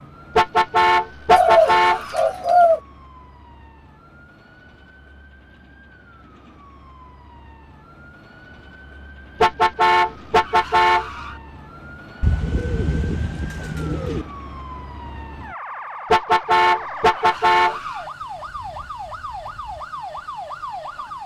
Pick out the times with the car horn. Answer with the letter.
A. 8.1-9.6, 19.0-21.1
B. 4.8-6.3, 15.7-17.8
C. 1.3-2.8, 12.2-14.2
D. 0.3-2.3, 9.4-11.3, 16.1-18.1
D.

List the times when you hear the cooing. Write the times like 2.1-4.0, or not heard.
1.3-2.8, 12.2-14.2.